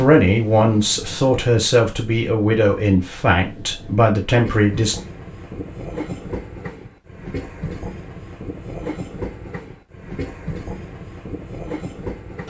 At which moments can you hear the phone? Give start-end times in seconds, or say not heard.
not heard.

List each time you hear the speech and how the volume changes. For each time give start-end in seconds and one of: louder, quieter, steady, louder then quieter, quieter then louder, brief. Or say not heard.
0.0-5.0 steady.